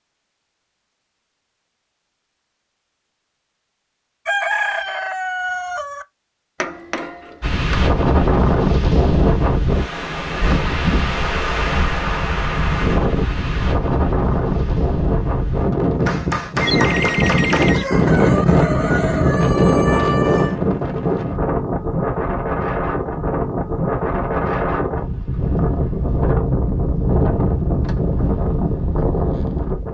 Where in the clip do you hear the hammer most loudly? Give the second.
17 s.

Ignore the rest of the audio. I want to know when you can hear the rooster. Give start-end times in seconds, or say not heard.
4.2-6.0, 16.6-20.6.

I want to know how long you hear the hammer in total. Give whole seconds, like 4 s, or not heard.
3 s.